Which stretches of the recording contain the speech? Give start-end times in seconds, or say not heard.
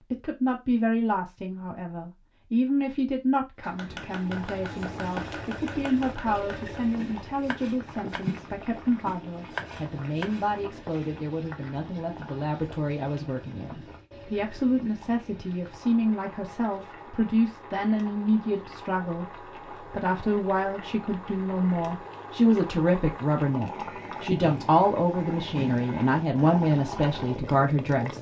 0.1-28.1.